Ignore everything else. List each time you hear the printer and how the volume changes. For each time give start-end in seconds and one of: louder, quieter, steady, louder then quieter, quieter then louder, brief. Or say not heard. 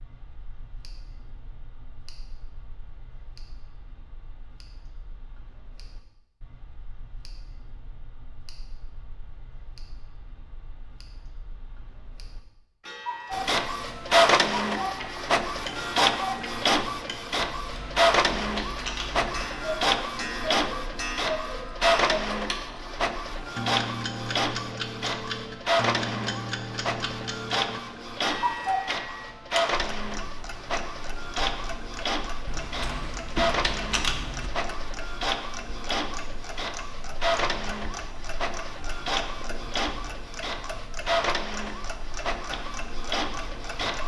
13.3-44.0 quieter.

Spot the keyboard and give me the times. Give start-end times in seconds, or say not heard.
17.4-19.4, 32.5-34.5.